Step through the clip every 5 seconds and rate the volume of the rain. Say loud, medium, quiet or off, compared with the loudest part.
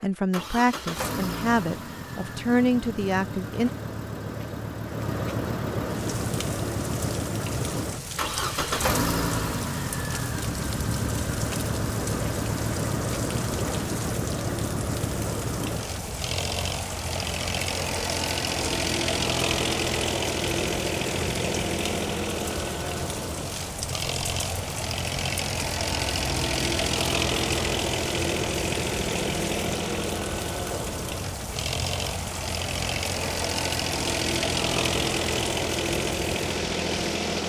off, loud, loud, loud, loud, loud, loud, loud.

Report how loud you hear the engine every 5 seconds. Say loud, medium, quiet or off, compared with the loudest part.
medium, loud, loud, loud, loud, loud, loud, loud.